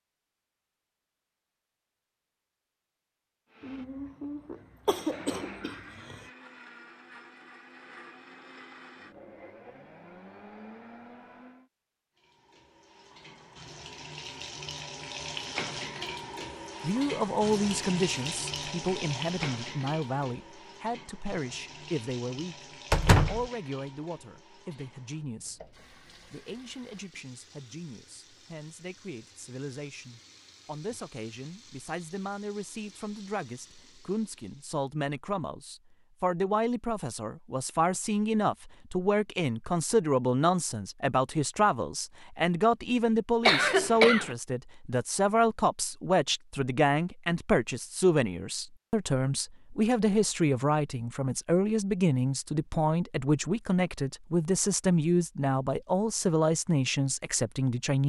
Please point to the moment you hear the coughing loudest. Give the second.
44 s.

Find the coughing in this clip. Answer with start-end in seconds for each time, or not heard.
3.6-6.2, 43.5-44.4.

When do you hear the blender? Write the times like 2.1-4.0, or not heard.
3.5-11.7.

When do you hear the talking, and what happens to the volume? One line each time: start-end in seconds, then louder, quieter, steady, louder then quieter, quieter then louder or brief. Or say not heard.
16.8-58.0 quieter then louder.